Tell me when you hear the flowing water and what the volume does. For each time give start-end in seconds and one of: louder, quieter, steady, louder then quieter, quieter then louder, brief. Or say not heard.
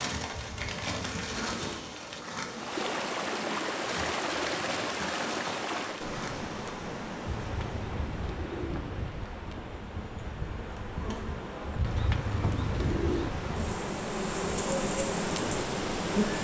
2.5-16.3 quieter then louder.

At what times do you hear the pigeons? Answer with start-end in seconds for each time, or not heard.
0.3-1.9, 7.2-9.2, 11.8-13.3.